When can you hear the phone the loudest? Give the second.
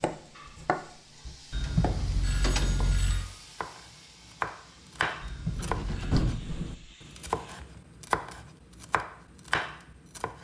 2 s.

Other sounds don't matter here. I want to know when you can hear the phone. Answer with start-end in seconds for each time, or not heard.
1.5-3.3, 5.2-6.2.